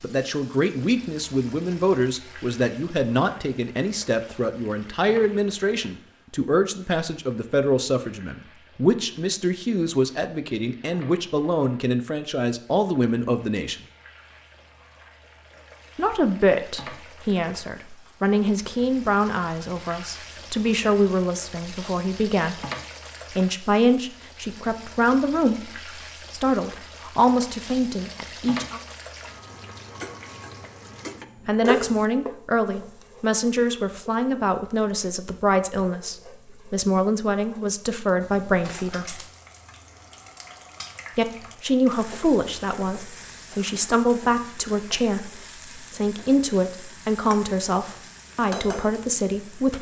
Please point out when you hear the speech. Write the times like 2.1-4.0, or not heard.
0.0-13.8, 15.9-22.6, 23.3-28.8, 31.4-39.2, 41.1-49.7.